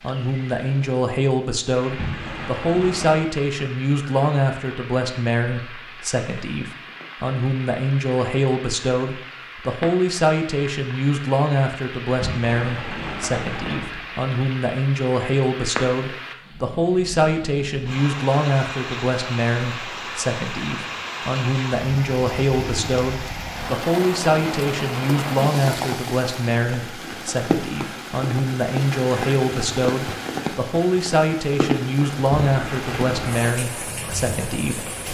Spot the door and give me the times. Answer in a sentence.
The door can be heard from 1.9 to 3.2 s, from 12.1 to 14.2 s and from 32.5 to 33.5 s.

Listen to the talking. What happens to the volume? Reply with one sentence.
The loudness of the talking stays about the same.